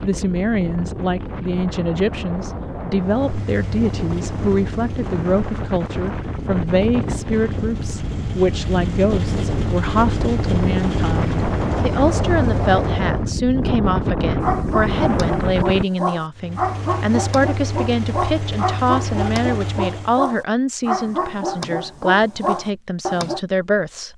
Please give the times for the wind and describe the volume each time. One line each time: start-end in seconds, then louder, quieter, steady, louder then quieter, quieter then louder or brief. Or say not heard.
0.0-15.8 louder.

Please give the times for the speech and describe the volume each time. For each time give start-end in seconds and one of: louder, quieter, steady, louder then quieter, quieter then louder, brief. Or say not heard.
0.0-24.1 steady.